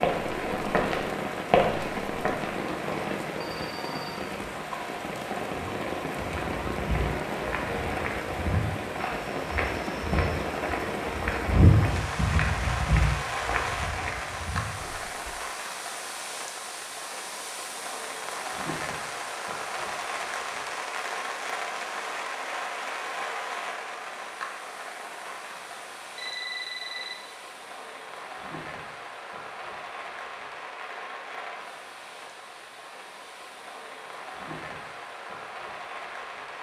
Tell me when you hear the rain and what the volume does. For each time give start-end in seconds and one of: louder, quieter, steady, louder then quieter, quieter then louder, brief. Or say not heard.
0.0-36.5 quieter.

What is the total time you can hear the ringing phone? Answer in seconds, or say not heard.
2 s.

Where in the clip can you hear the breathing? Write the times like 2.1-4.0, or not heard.
not heard.